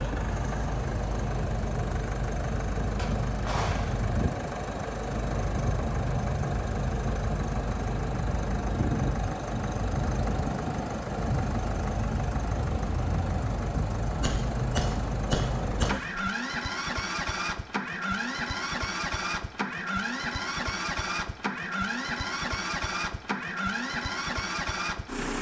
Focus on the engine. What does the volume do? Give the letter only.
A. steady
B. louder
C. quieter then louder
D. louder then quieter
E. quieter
A.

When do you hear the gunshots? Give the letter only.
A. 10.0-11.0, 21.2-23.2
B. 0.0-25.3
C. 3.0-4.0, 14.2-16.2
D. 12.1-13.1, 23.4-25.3
C.